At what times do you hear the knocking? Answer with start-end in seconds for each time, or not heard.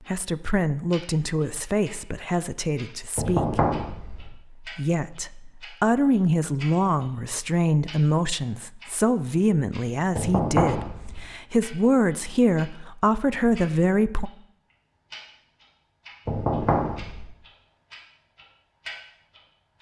3.1-4.2, 10.2-11.2, 16.2-17.2.